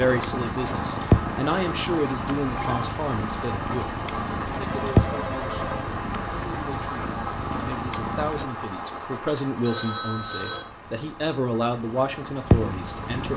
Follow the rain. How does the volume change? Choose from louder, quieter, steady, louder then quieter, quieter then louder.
quieter.